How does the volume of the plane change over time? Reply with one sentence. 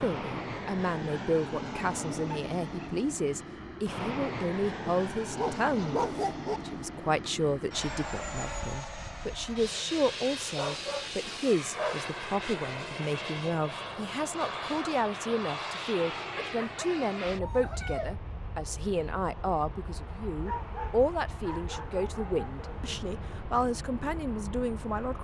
The volume of the plane goes down.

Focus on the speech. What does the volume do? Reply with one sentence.
The loudness of the speech stays about the same.